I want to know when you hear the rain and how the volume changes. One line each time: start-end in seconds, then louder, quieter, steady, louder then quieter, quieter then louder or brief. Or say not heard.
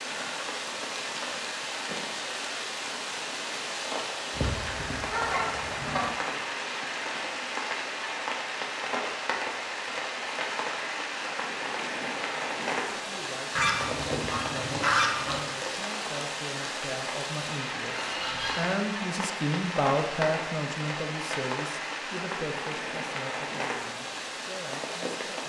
0.0-25.4 steady.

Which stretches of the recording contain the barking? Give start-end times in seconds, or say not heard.
not heard.